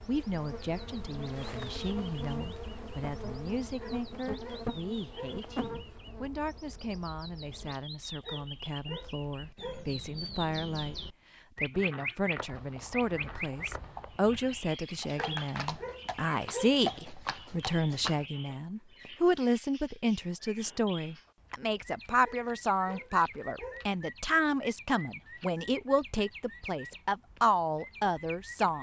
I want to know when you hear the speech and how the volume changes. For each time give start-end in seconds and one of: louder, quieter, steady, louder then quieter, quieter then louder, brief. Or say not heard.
0.1-28.7 louder.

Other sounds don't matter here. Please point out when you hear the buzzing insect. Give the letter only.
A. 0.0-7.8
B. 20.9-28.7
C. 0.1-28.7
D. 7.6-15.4
A.